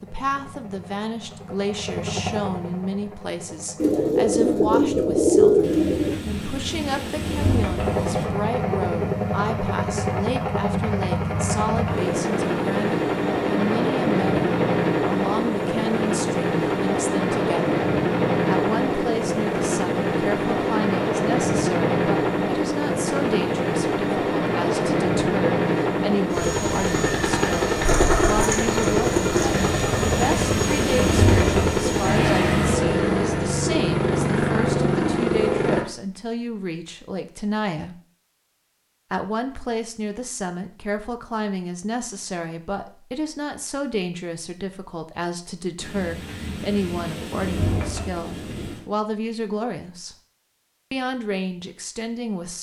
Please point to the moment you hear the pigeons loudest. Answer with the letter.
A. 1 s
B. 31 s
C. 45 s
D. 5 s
D.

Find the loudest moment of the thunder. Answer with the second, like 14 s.
31 s.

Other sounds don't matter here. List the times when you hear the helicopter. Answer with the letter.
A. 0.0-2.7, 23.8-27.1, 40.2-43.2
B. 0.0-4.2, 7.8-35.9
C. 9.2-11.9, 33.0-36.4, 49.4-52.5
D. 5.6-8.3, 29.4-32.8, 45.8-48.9
B.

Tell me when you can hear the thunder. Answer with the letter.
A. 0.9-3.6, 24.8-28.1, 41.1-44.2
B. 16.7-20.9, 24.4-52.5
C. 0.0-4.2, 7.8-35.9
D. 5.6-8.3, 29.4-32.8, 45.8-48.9
D.